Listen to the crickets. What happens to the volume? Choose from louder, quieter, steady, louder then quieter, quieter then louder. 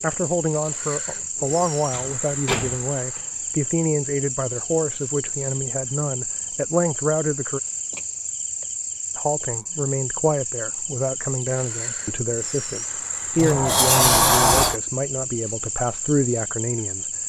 steady.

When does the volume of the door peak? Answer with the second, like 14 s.
14 s.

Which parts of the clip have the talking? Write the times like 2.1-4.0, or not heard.
0.0-7.6, 9.2-17.1.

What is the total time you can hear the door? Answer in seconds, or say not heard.
3 s.